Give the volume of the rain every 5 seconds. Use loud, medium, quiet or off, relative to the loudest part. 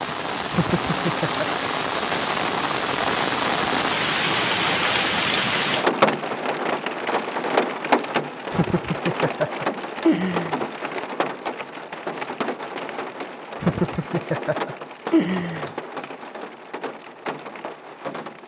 loud, loud, medium, medium.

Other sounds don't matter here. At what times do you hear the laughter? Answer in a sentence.
The laughter can be heard from 0.5 to 1.4 s, from 8.5 to 10.6 s and from 13.6 to 15.7 s.